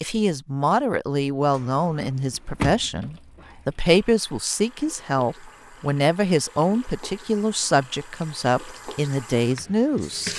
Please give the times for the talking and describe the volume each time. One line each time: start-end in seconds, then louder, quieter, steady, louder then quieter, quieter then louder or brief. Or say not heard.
0.0-10.3 steady.